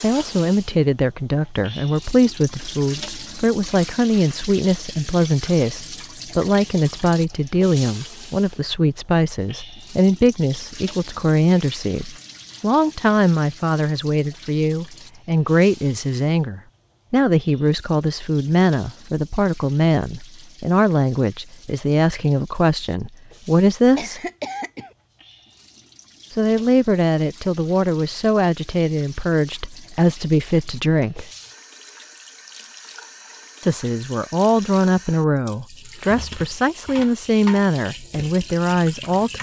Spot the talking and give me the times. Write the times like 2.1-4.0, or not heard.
0.0-24.2, 26.3-31.3, 33.6-39.3.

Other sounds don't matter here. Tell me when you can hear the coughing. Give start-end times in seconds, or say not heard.
23.9-24.9.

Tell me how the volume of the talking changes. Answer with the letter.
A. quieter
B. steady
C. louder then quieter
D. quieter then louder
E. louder
B.